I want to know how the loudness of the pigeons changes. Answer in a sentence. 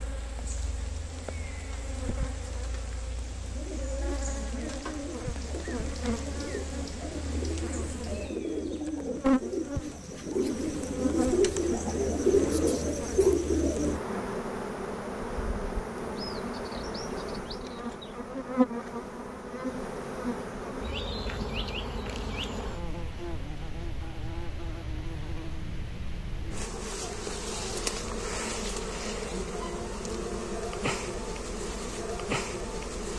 The loudness of the pigeons goes up.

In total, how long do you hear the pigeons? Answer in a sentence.
The pigeons can be heard for 11 seconds in total.